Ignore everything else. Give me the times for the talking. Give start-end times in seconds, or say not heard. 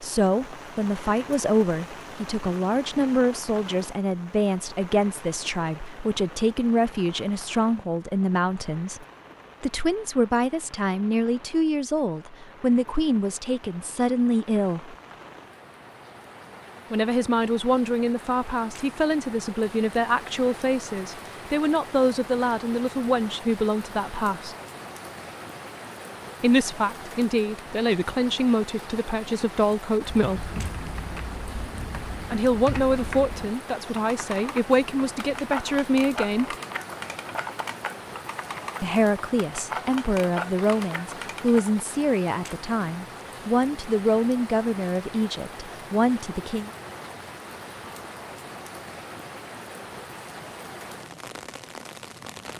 0.0-14.9, 16.9-24.6, 26.4-30.5, 32.3-36.5, 38.8-46.7.